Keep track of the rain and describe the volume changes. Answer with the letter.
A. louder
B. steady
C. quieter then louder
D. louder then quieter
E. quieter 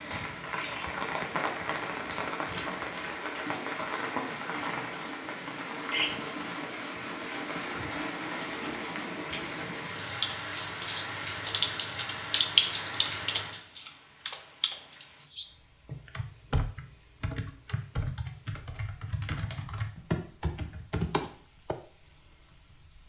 E.